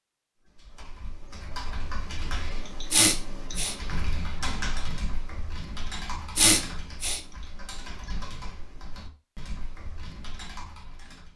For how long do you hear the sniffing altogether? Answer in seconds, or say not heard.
2 s.